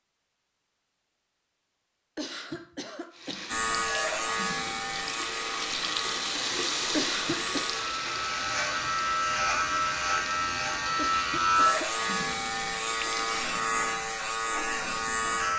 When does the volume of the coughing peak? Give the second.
7 s.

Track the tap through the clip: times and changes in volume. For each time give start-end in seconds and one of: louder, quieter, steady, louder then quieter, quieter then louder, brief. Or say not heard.
3.1-13.7 louder then quieter.